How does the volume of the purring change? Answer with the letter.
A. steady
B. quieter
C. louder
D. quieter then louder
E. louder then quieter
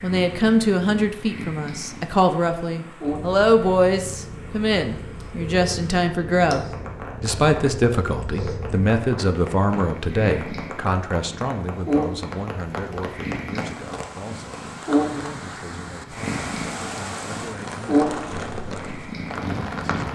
C.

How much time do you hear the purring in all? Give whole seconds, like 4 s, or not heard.
20 s.